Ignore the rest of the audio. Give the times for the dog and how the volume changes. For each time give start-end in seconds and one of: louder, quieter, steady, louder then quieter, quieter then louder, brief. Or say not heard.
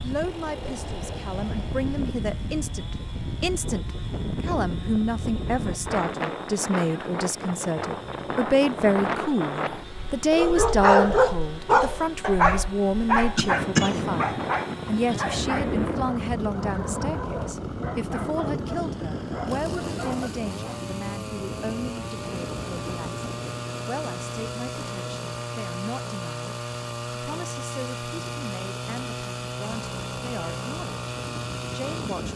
10.3-20.9 quieter.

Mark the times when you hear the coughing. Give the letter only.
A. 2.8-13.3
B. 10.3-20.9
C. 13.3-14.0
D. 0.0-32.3
C.